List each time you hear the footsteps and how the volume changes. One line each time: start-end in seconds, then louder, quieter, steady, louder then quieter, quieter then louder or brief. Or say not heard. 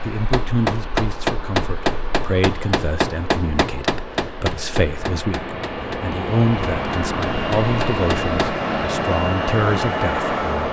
not heard.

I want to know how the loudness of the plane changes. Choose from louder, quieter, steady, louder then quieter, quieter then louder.
louder.